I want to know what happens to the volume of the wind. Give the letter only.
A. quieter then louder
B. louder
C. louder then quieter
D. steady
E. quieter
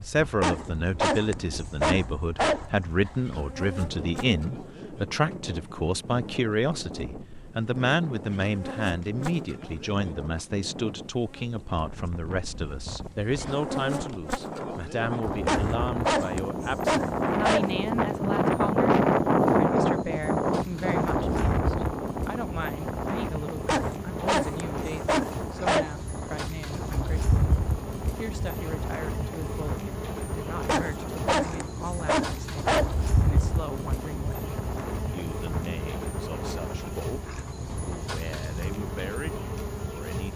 C.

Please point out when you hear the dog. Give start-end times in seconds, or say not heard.
0.4-3.1, 15.4-17.8, 23.6-25.9, 30.6-33.0.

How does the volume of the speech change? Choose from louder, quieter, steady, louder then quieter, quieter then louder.
quieter.